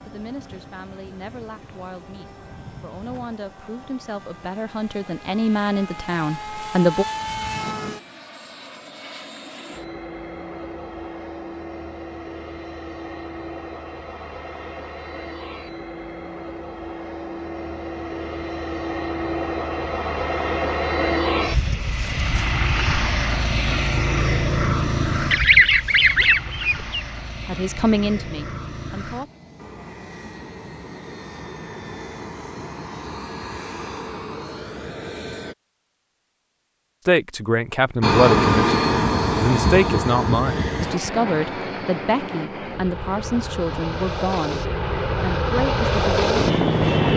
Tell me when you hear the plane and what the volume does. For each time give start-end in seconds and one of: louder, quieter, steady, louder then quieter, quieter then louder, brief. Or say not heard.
0.0-35.5 louder then quieter
38.0-47.1 quieter then louder.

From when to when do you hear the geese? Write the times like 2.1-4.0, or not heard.
25.3-26.9.